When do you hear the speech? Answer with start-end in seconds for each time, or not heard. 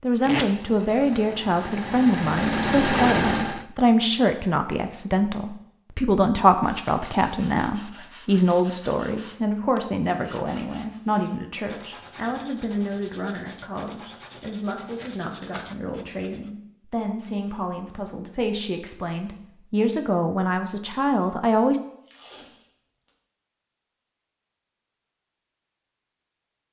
0.0-21.8.